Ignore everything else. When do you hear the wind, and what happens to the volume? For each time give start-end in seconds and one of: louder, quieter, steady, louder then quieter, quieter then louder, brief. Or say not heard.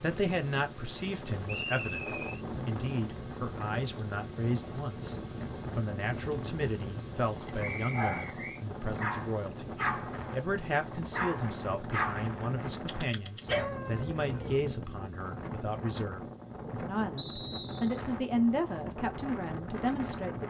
0.0-20.4 steady.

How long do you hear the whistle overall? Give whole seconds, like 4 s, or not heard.
3 s.